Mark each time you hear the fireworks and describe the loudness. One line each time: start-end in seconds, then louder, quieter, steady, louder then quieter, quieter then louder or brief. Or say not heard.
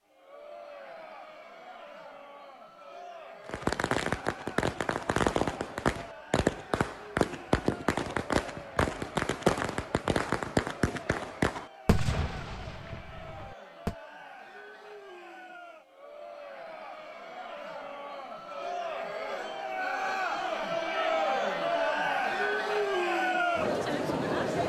3.5-13.9 quieter.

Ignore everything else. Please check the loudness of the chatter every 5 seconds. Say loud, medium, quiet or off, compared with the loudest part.
quiet, quiet, quiet, medium, loud.